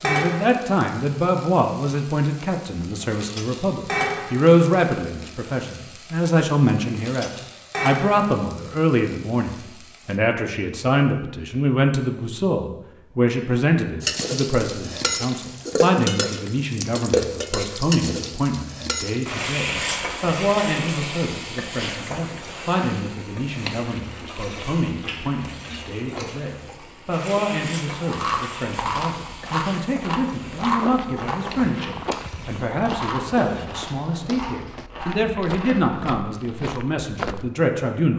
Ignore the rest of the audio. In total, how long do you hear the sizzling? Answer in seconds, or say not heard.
30 s.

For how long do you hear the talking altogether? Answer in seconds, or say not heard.
38 s.